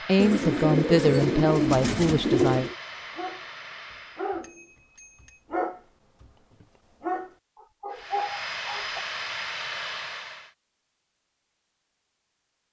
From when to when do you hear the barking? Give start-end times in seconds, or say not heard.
3.1-9.0.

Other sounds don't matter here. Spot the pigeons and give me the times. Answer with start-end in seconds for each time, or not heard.
0.1-2.8.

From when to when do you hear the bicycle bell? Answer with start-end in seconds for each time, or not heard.
4.4-5.5.